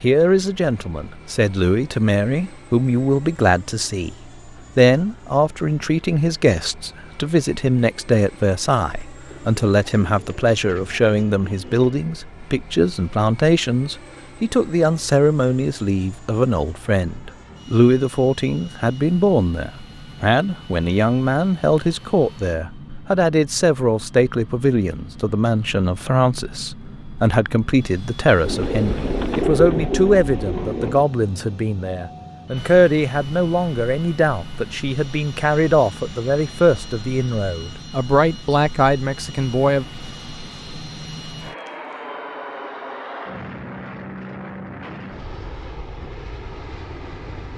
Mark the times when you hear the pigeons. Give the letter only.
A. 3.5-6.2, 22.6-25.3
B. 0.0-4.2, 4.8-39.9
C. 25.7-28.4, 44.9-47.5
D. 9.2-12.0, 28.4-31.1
D.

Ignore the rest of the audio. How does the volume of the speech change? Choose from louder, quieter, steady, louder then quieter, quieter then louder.
steady.